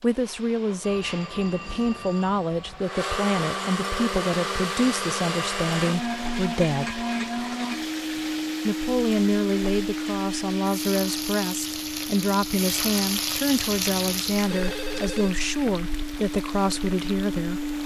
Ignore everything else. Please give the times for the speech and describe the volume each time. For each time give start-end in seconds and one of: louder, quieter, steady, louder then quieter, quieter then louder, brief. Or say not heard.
0.0-7.0 steady
8.7-17.6 steady.